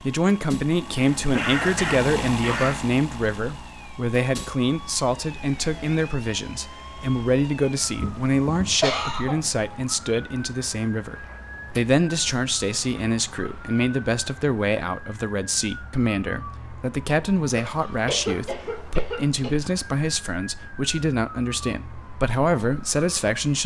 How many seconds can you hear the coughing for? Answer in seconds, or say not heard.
6 s.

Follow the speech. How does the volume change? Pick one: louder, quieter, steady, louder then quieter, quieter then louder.
steady.